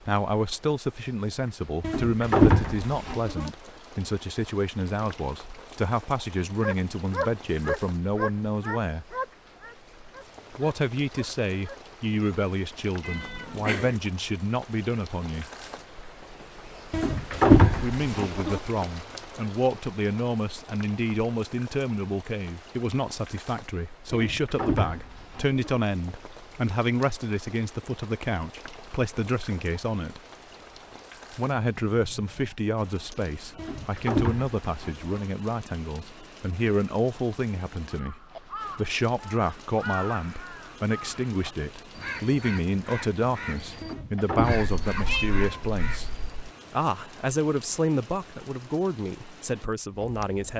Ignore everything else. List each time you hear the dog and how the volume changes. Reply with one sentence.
The dog can be heard from 6.6 to 12.3 s, getting quieter.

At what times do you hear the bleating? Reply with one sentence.
You can hear the bleating from 1.8 to 3.5 s, from 16.9 to 18.6 s, from 24.1 to 25.8 s, from 33.5 to 35.2 s and from 43.8 to 45.4 s.